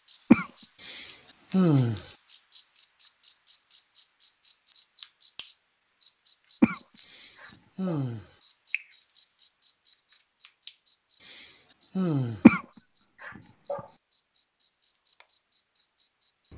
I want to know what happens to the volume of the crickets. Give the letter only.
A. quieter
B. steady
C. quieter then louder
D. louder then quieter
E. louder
A.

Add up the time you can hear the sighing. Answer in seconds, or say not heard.
4 s.